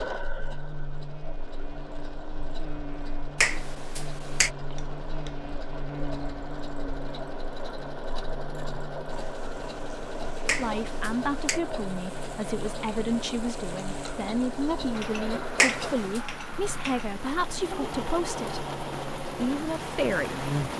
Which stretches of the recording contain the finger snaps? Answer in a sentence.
You can hear the finger snaps from 3.4 to 4.5 s, from 10.4 to 11.6 s and from 15.6 to 16.2 s.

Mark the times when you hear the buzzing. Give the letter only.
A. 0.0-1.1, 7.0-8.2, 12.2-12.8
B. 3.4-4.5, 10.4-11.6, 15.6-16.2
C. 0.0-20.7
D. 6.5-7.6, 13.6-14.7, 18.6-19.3
C.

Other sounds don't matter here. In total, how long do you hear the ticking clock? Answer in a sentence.
You can't hear the ticking clock here.